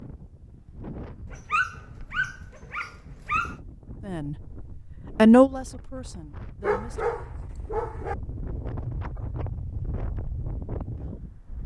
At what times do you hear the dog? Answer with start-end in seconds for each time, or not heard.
1.2-3.5, 6.6-8.2.